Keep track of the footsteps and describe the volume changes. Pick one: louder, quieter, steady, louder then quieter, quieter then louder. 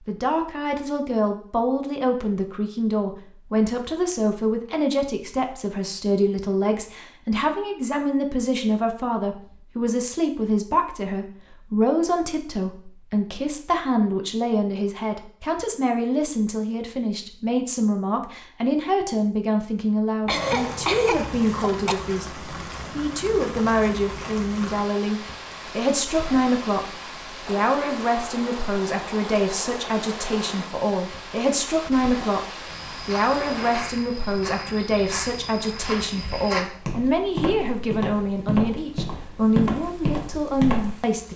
louder.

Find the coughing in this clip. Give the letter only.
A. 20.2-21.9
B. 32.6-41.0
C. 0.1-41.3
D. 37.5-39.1
A.